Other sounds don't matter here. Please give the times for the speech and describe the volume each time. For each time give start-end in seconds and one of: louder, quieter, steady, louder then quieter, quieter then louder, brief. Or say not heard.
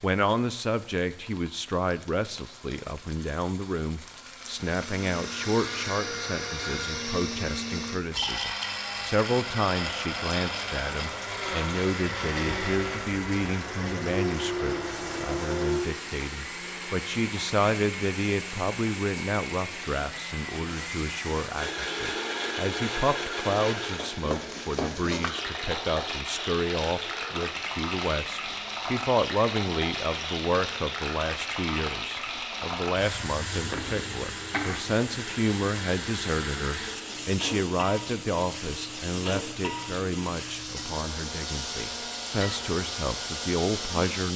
0.0-44.3 steady.